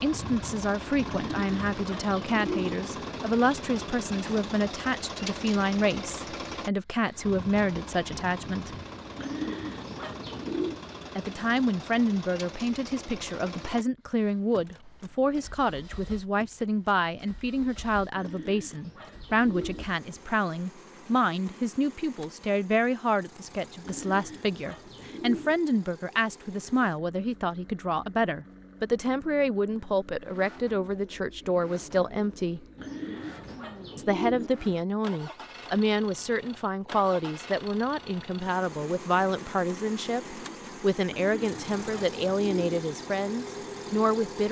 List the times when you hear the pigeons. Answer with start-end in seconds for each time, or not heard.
1.1-2.8, 9.2-10.8, 18.1-19.9, 23.8-25.6, 32.8-34.5, 41.0-42.8.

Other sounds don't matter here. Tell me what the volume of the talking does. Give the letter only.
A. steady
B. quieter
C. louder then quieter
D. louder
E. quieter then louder
A.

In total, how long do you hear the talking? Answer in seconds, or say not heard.
41 s.